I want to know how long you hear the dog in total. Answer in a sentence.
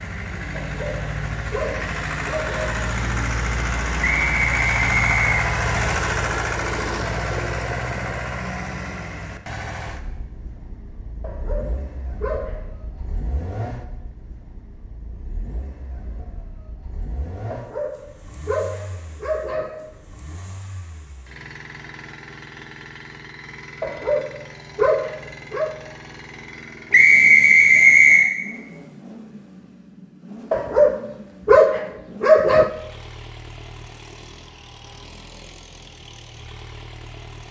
You can hear the dog for 10 seconds altogether.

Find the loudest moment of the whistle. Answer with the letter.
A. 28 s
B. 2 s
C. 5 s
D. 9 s
A.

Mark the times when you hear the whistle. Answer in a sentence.
You can hear the whistle from 4.0 to 5.4 s and from 26.9 to 28.3 s.